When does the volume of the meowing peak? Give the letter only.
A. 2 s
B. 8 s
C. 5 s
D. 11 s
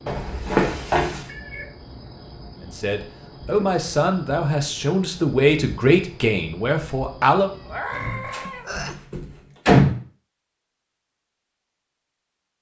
B.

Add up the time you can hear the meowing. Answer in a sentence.
The meowing can be heard for 2 seconds in total.